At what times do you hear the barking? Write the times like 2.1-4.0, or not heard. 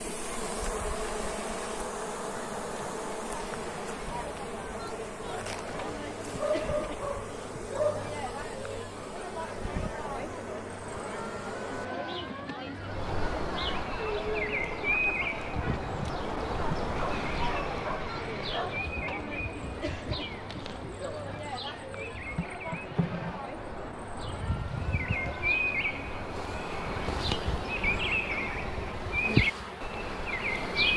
6.3-8.1, 16.9-18.9.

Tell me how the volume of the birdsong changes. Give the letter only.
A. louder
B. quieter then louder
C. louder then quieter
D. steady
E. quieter
B.